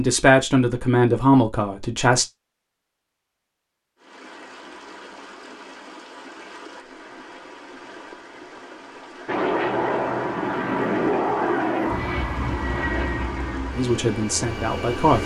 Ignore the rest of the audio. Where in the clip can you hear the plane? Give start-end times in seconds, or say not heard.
9.2-15.2.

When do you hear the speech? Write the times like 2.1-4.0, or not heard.
0.0-2.2, 13.8-15.2.